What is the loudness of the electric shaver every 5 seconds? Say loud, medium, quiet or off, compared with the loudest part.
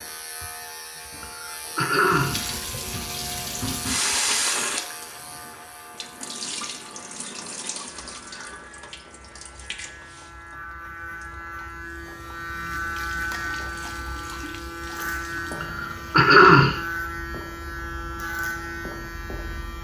medium, quiet, loud, loud.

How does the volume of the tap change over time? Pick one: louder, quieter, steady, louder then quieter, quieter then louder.
quieter then louder.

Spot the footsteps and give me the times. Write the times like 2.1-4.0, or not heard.
not heard.